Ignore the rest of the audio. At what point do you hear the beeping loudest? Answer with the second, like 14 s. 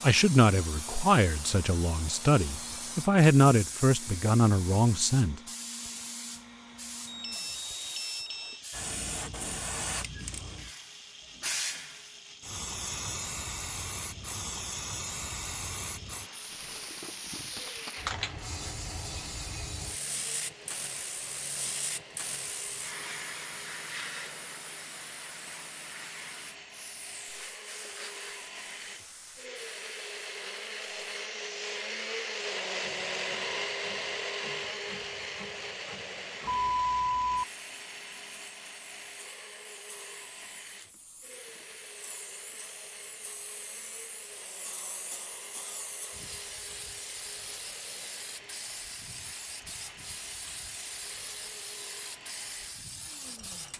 37 s.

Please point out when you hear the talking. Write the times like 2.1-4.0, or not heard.
0.0-5.4.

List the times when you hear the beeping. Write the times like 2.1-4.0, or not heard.
7.0-8.6, 36.5-37.5.